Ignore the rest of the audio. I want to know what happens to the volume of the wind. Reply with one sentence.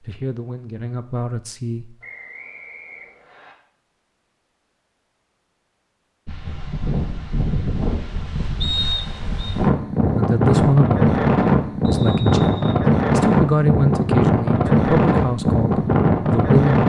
The loudness of the wind goes up.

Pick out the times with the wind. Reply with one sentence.
The wind can be heard from 6.2 to 16.8 s.